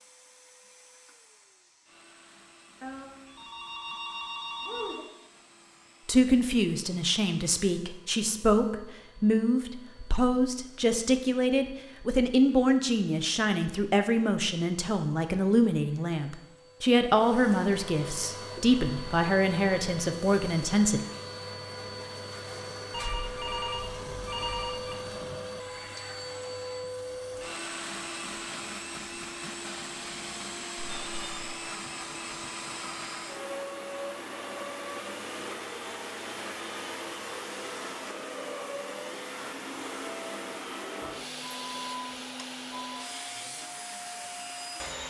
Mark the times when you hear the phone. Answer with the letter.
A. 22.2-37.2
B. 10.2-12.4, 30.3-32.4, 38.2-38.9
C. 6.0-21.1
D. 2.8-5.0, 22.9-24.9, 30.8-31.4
D.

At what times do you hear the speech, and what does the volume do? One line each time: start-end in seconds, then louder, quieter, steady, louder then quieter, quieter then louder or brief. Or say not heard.
6.0-21.1 steady.